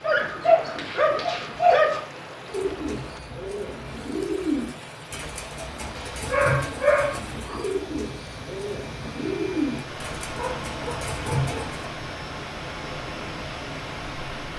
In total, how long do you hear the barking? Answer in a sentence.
The barking can be heard for 5 seconds in total.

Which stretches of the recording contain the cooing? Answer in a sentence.
The cooing can be heard from 2.5 to 11.8 s.